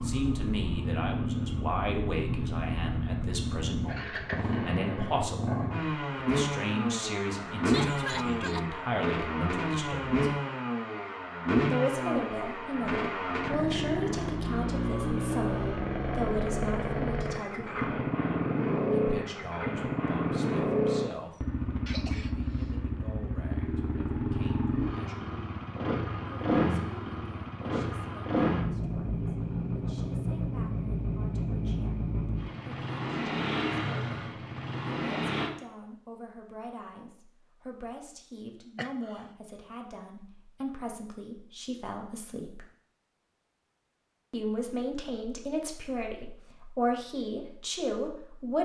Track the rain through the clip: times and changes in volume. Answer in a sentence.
The rain can't be heard in this clip.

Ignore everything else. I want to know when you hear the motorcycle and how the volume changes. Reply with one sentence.
You can hear the motorcycle from 0.0 to 35.5 s, at a steady volume.